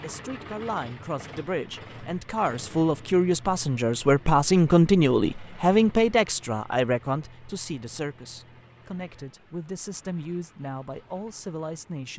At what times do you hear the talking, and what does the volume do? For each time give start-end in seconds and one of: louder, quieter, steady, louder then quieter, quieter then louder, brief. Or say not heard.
0.0-12.1 louder then quieter.